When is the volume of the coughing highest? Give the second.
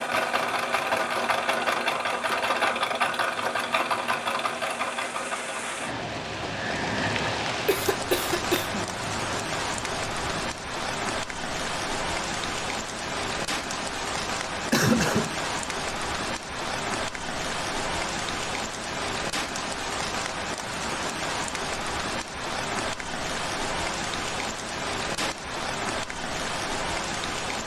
15 s.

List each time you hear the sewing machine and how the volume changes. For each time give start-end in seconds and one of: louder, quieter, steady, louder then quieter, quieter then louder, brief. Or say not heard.
0.0-10.7 quieter.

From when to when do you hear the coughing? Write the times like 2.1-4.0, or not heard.
7.7-8.9, 14.7-15.3.